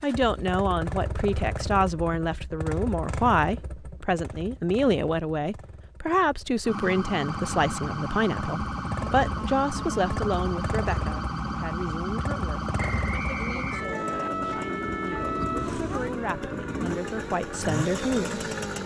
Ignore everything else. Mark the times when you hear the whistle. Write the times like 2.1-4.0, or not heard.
12.8-14.3.